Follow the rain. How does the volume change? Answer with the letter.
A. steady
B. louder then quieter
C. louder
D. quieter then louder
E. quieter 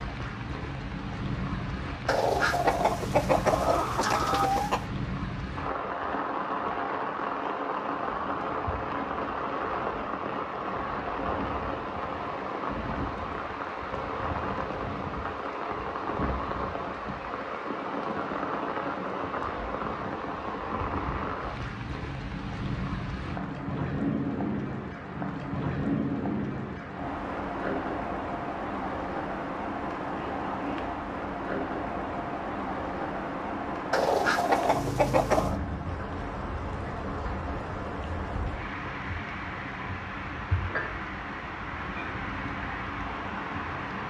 A.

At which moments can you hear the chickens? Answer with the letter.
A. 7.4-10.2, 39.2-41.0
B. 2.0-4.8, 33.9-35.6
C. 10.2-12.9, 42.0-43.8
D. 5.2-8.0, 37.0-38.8
B.